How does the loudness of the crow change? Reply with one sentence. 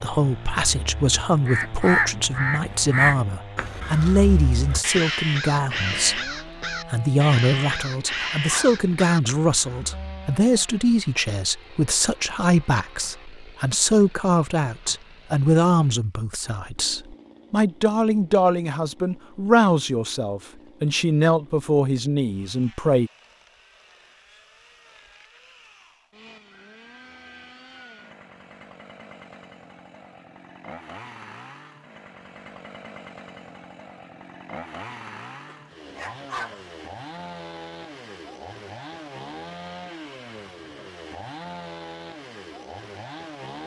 The loudness of the crow goes down.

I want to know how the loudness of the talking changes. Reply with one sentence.
The loudness of the talking stays about the same.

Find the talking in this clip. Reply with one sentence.
You can hear the talking from 0.0 to 23.1 s.